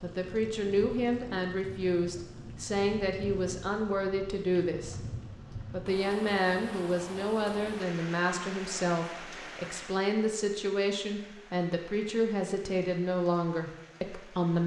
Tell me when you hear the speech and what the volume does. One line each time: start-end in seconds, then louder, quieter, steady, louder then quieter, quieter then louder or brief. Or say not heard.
0.0-5.0 steady
5.7-14.6 steady.